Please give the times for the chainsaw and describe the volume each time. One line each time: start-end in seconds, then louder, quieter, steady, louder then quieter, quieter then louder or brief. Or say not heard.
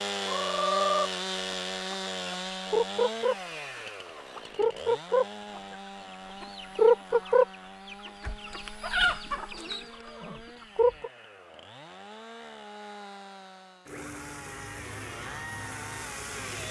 0.0-16.6 quieter then louder.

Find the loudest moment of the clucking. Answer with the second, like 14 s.
7 s.